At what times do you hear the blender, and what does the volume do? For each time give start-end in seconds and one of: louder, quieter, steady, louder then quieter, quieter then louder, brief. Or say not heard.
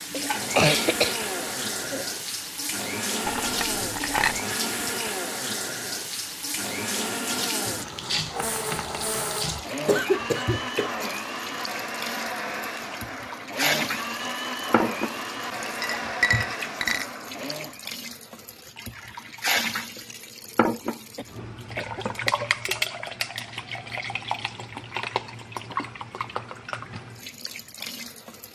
0.1-17.9 steady.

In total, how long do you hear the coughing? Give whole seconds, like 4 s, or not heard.
4 s.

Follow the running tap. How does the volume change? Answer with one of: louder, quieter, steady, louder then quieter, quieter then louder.
steady.